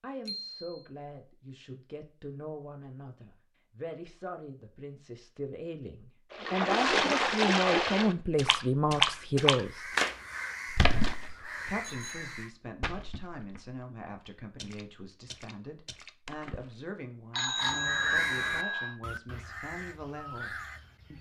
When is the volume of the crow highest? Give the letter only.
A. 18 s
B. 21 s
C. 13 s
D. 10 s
A.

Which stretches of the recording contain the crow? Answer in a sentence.
The crow can be heard from 8.9 to 12.6 s and from 17.6 to 21.1 s.